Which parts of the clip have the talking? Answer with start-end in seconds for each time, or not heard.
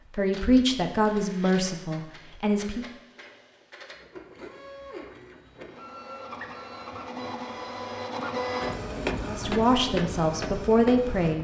0.1-2.9, 9.2-11.4.